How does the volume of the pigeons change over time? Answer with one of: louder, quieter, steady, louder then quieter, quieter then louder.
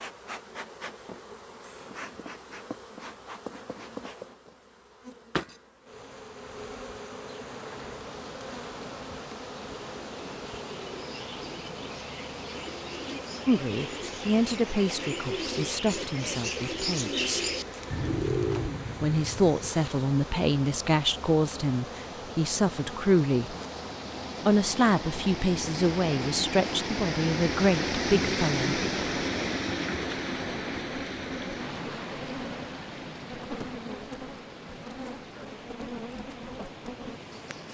louder.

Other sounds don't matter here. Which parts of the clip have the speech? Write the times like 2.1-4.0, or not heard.
13.4-17.4, 19.0-23.6, 24.4-28.8.